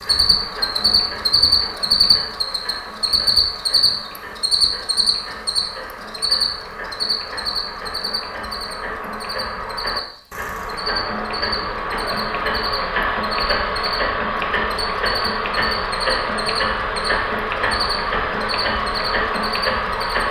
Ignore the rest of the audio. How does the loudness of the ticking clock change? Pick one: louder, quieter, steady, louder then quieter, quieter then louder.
louder.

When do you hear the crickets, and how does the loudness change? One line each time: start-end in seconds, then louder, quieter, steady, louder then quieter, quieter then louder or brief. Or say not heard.
0.0-20.2 quieter.